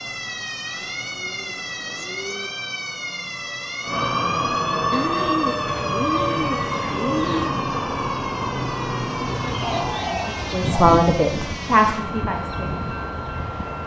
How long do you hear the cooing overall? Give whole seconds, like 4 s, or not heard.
6 s.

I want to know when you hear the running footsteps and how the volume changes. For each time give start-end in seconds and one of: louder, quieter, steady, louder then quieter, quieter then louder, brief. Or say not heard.
not heard.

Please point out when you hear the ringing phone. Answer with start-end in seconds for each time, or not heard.
not heard.